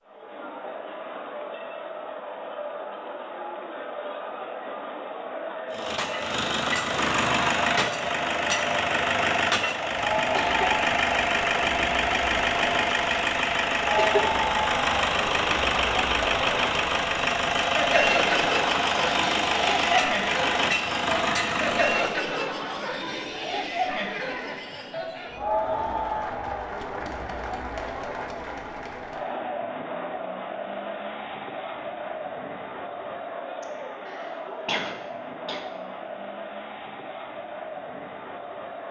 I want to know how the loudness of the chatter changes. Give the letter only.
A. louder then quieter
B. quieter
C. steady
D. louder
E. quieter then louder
A.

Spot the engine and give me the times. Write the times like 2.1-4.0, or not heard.
5.7-22.2.